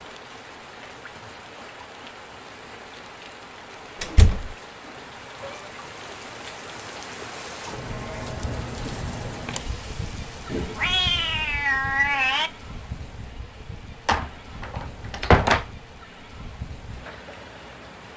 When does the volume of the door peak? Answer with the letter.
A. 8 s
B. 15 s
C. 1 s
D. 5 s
B.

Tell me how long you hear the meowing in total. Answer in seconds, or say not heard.
3 s.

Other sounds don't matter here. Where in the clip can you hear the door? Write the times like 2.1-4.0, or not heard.
4.0-4.5, 14.1-15.7.